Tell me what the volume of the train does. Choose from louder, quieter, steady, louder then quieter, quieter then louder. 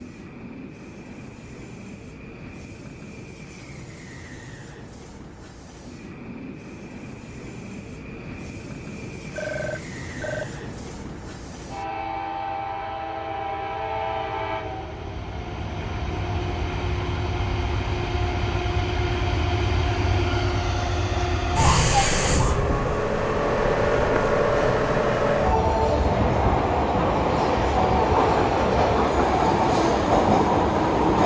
louder.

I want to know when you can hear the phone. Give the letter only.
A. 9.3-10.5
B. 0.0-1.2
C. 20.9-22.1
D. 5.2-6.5
A.